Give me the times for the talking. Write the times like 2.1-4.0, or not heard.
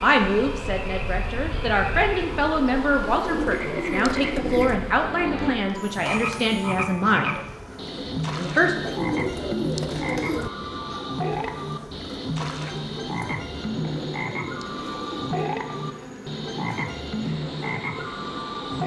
0.0-7.4, 8.3-8.9.